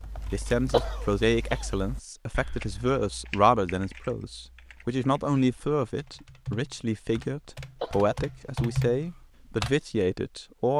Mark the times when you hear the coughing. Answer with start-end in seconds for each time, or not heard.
0.7-1.6, 7.8-8.8.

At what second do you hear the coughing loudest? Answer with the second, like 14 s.
1 s.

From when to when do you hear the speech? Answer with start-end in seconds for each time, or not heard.
0.3-10.7.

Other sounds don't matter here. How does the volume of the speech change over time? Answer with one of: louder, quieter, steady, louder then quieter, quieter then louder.
steady.